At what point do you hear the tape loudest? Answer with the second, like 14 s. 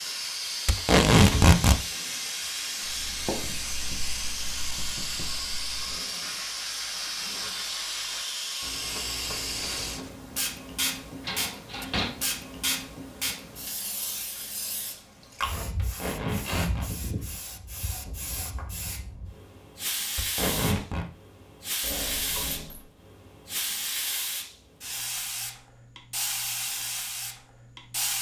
1 s.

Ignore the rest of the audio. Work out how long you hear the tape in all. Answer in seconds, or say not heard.
3 s.